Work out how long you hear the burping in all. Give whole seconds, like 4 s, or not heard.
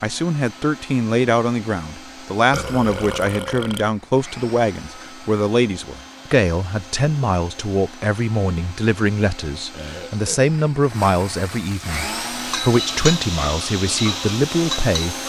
2 s.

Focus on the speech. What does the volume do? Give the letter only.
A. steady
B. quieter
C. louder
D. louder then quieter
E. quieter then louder
A.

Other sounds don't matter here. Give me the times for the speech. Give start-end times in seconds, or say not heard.
0.0-15.2.